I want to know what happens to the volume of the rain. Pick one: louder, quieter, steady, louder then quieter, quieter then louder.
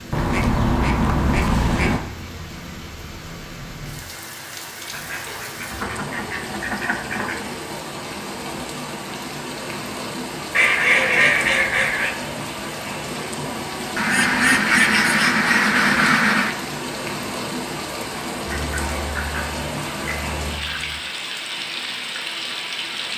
louder.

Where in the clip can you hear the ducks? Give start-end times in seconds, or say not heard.
0.1-2.0, 4.9-7.5, 10.5-12.2, 13.9-16.6, 18.5-20.9.